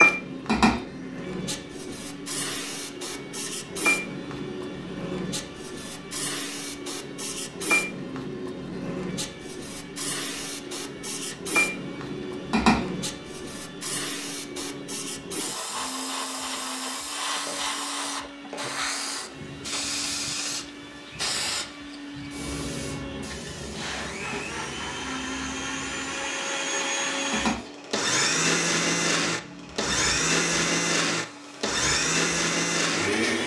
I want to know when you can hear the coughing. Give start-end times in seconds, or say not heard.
not heard.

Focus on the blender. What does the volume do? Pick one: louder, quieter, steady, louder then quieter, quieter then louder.
louder.